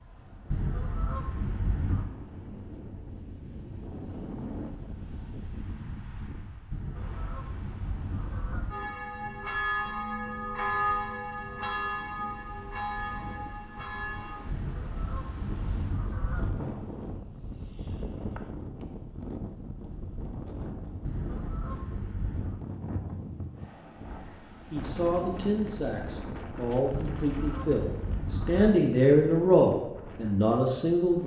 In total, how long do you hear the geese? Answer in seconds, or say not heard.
9 s.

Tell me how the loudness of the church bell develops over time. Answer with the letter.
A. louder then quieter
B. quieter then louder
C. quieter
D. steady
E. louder
C.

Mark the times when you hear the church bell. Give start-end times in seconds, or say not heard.
8.7-14.4.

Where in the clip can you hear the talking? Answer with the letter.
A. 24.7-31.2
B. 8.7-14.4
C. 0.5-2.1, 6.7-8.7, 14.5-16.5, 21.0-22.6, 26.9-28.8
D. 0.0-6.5
A.